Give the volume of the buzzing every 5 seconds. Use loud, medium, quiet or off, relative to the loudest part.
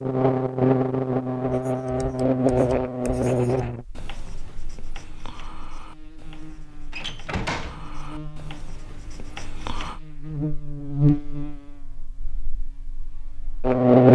loud, quiet, loud.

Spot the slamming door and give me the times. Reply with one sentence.
You can hear the slamming door from 6.9 to 7.8 s.